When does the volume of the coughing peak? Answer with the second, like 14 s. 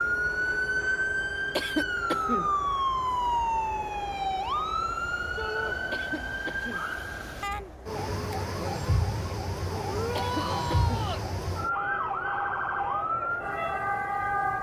2 s.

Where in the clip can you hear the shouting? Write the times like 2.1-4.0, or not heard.
5.3-5.8, 9.8-11.2.